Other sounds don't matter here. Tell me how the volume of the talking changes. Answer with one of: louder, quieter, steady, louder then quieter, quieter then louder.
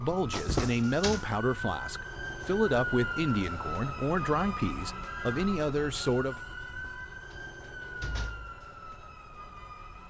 steady.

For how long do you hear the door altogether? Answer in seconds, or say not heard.
3 s.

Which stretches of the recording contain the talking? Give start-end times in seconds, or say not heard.
0.0-6.4.